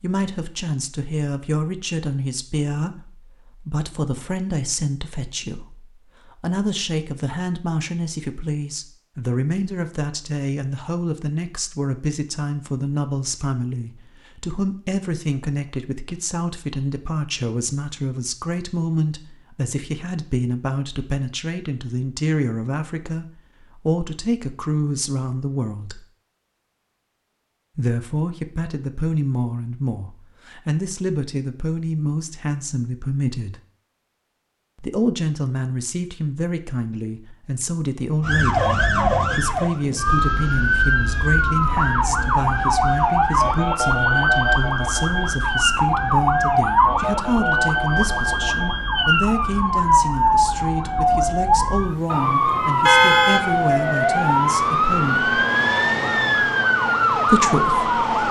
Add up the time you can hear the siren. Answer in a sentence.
The siren can be heard for 20 seconds in total.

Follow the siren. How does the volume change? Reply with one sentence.
The volume of the siren stays about the same.